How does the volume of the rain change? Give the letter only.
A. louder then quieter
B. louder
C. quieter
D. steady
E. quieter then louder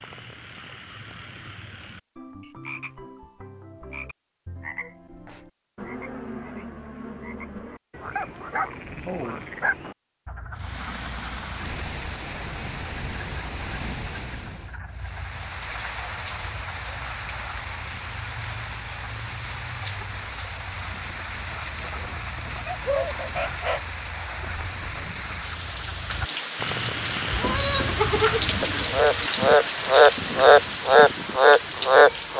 B.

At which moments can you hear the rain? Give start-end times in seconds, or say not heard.
10.5-32.3.